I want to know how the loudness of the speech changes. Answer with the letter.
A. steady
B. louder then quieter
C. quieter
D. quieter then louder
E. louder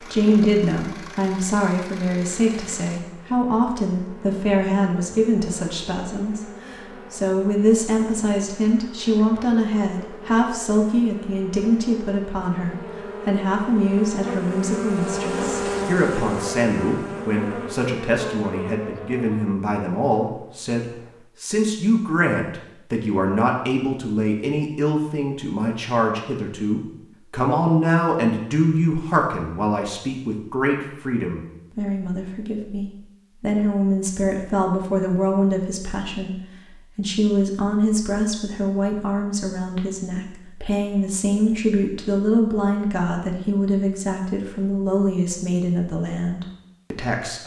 A.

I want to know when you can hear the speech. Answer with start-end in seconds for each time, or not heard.
0.0-47.4.